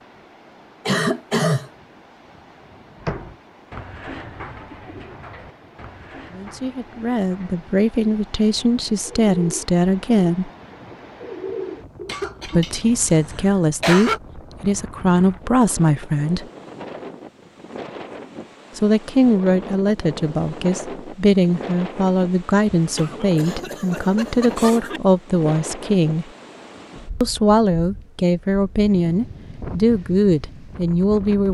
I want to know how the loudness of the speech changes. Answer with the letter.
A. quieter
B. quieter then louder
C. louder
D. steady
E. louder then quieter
D.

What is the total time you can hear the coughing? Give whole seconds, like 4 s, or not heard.
5 s.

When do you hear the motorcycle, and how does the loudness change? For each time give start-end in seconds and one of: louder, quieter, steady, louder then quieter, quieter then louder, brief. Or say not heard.
not heard.